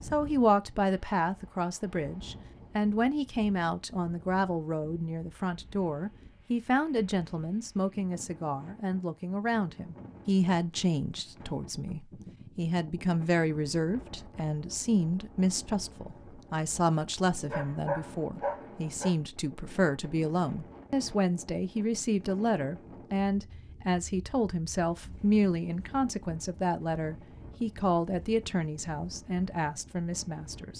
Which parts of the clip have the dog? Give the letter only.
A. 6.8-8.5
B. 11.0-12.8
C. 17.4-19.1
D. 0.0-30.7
C.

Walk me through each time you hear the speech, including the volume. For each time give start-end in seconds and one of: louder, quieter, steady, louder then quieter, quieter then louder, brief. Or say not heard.
0.0-30.7 steady.